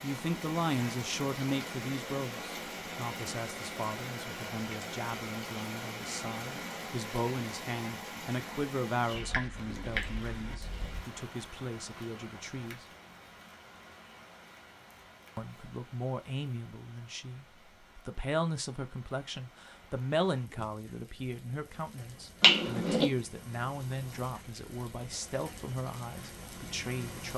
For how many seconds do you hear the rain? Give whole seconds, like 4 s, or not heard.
27 s.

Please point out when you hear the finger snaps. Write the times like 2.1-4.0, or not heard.
9.2-11.0, 22.4-23.1.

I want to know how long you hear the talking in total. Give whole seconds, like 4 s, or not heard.
25 s.